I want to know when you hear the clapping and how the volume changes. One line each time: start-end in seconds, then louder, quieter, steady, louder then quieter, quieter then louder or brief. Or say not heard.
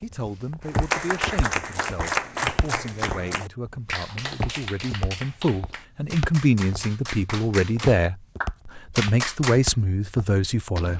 0.7-9.7 quieter then louder.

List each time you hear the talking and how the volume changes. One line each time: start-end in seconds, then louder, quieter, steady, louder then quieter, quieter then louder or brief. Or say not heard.
0.0-10.9 louder.